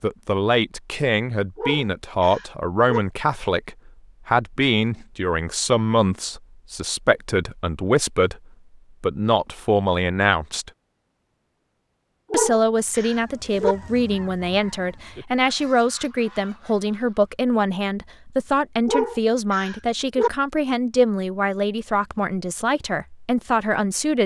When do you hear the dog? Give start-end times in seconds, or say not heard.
1.6-3.0, 12.3-13.8, 18.9-20.3.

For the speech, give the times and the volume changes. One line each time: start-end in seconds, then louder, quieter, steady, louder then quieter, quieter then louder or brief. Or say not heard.
0.0-8.4 steady
9.0-10.7 brief
12.3-24.2 steady.